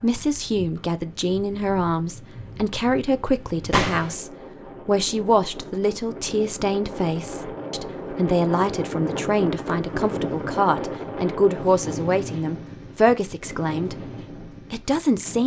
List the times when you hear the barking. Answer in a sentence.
The barking can't be heard in this clip.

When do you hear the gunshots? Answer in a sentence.
You can hear the gunshots from 3.7 to 4.2 s.